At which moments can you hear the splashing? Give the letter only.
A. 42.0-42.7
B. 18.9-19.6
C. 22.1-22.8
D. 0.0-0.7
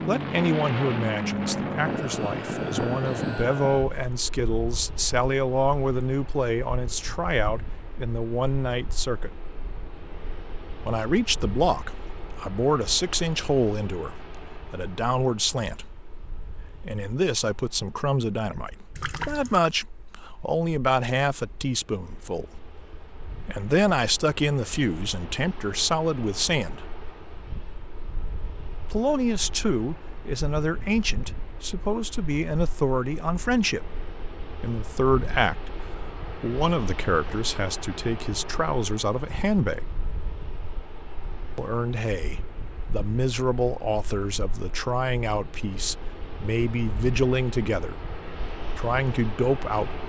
B.